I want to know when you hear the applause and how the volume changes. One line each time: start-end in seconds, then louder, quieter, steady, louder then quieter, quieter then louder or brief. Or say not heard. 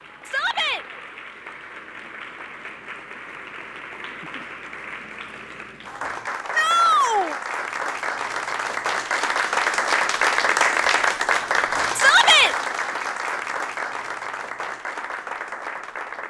0.0-16.2 louder then quieter.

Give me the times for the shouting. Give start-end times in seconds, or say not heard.
0.2-0.8, 6.5-7.3, 11.9-12.6.